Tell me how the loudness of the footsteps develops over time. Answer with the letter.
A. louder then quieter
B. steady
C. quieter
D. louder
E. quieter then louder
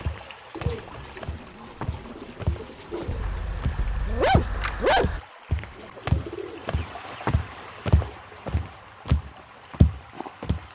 D.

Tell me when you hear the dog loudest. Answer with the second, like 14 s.
5 s.